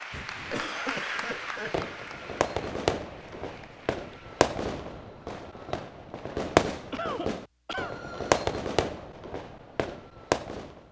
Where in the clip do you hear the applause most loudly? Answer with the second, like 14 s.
1 s.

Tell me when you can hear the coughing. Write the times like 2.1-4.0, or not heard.
0.1-1.9, 6.9-8.0.